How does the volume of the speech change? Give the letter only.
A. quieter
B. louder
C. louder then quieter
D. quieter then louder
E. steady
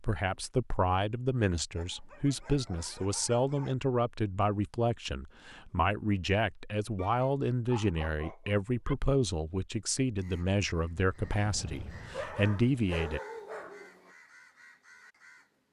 E.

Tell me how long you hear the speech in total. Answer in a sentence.
You can hear the speech for 13 seconds altogether.